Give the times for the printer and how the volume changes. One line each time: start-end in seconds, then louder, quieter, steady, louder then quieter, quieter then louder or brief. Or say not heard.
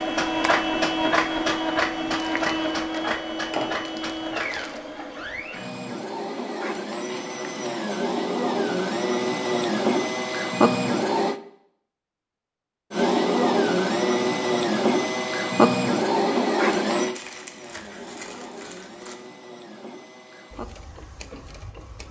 0.0-11.4 quieter then louder
12.9-22.0 quieter.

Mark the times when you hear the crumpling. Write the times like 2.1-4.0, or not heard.
2.1-4.8, 17.1-19.1.